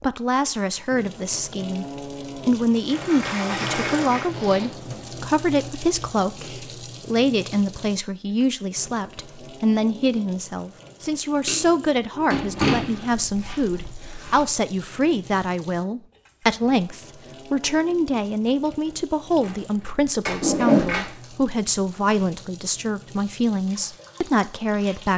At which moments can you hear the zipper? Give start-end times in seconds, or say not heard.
4.2-4.8, 12.8-14.4, 20.4-20.9.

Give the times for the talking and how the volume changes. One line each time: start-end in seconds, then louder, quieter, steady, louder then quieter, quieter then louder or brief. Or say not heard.
0.0-1.9 brief
2.5-25.1 steady.